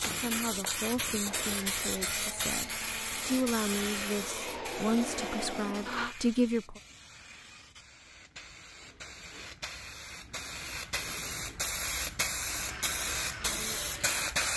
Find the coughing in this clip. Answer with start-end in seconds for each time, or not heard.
not heard.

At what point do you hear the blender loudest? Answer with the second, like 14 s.
6 s.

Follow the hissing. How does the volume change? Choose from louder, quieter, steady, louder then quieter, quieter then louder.
quieter then louder.